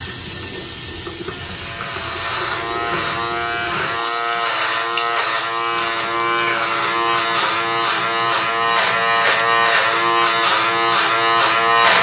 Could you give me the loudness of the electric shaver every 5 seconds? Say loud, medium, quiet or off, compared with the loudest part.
medium, loud, loud.